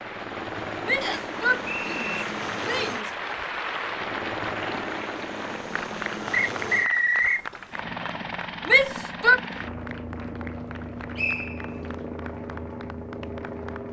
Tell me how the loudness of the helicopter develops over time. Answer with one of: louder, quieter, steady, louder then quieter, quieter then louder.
steady.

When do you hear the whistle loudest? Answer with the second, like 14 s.
7 s.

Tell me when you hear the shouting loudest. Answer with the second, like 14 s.
9 s.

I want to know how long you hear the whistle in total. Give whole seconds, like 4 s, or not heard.
3 s.